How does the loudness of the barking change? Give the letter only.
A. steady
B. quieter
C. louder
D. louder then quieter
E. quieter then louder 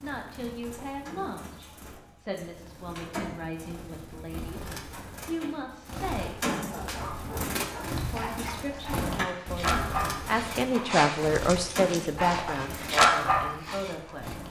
C.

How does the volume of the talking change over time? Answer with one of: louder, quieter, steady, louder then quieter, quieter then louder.
louder then quieter.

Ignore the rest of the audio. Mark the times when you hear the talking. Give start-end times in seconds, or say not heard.
0.0-6.4, 8.1-14.4.